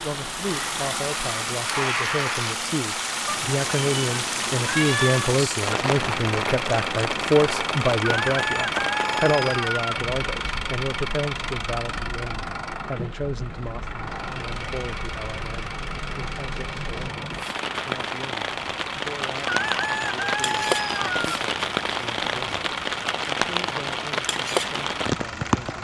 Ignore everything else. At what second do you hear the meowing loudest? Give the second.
5 s.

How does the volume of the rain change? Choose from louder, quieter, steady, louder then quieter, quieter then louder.
quieter then louder.